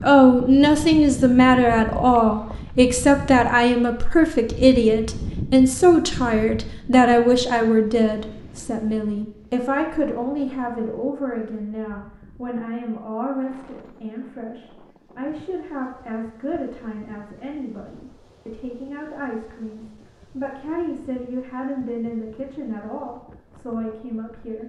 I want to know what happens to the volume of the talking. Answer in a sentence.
The loudness of the talking goes down.